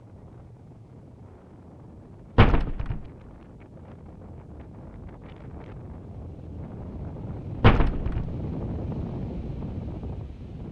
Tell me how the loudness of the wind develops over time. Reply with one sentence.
The volume of the wind goes up.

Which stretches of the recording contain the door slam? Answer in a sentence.
You can hear the door slam from 2.4 to 3.0 s and from 7.6 to 8.3 s.